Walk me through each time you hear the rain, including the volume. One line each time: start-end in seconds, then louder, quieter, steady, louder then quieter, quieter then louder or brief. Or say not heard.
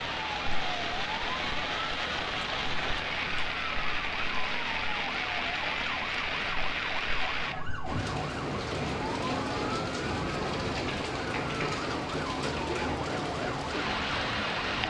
0.0-14.8 steady.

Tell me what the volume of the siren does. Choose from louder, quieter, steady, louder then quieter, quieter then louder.
steady.